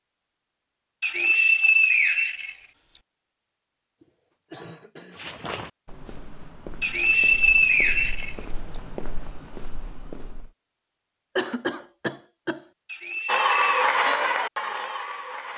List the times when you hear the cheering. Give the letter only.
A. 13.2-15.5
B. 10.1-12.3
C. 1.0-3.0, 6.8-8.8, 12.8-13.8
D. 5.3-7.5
A.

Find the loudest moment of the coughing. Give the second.
12 s.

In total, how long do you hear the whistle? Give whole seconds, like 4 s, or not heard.
5 s.